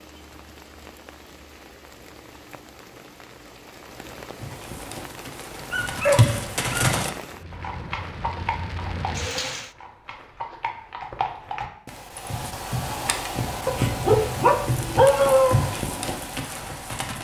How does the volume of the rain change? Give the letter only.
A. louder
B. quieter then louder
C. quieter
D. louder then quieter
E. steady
A.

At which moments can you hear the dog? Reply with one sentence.
The dog can be heard from 5.7 to 7.0 s and from 13.7 to 15.6 s.